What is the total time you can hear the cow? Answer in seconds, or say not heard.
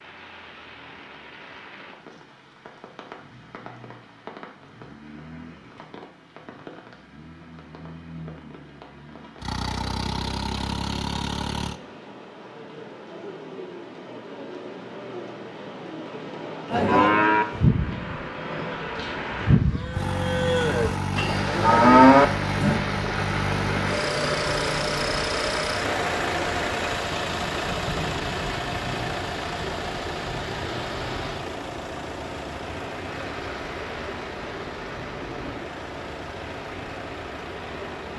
6 s.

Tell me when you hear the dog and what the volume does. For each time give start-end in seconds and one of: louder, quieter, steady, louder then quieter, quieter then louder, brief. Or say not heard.
not heard.